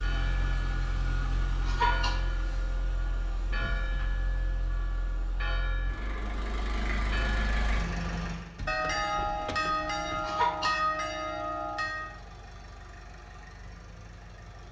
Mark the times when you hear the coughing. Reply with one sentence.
The coughing can be heard from 1.6 to 2.6 s and from 10.2 to 10.8 s.